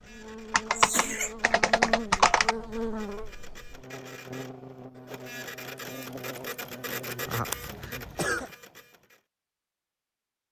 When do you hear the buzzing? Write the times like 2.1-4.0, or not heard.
0.0-7.5.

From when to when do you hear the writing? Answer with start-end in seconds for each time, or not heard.
not heard.